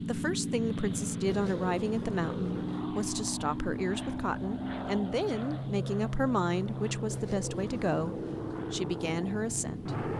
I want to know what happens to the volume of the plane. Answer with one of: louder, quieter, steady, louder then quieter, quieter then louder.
steady.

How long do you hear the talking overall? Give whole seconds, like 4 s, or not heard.
10 s.